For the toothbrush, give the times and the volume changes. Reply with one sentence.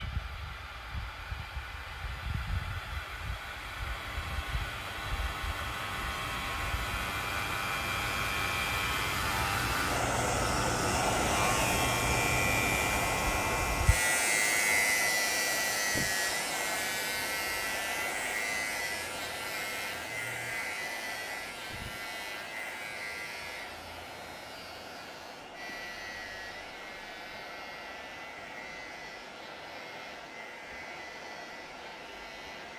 The toothbrush can't be heard in this clip.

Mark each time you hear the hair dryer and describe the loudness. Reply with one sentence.
The hair dryer can be heard from 0.0 to 32.7 s, getting louder then quieter.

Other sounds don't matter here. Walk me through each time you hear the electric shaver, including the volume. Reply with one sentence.
The electric shaver can be heard from 0.0 to 32.7 s, getting louder then quieter.